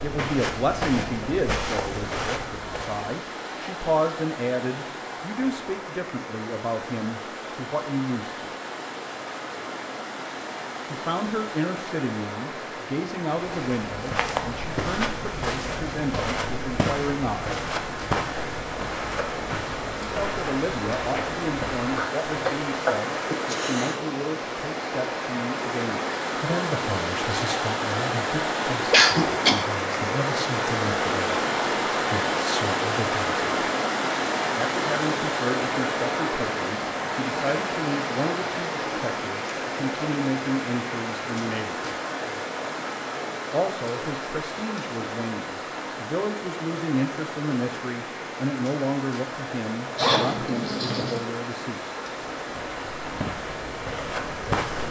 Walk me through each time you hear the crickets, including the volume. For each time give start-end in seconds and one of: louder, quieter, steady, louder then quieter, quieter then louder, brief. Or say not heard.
not heard.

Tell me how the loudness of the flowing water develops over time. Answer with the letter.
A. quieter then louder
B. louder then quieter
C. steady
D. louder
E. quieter
B.